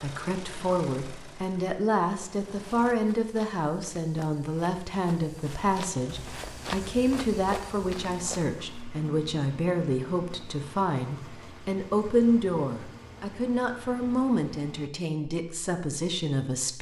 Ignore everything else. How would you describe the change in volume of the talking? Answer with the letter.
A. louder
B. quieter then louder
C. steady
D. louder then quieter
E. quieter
C.